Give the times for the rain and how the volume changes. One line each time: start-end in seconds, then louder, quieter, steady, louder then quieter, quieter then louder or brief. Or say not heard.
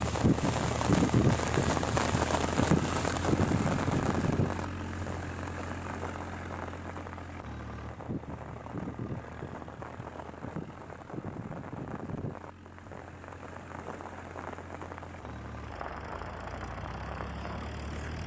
0.0-18.2 quieter.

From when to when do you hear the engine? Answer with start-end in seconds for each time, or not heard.
0.0-18.2.